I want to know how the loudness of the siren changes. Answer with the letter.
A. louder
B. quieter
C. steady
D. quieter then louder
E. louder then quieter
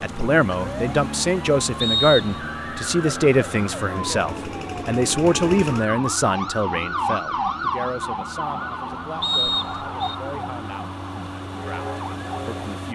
E.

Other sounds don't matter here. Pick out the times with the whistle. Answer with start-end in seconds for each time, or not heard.
1.8-2.4, 9.2-10.2.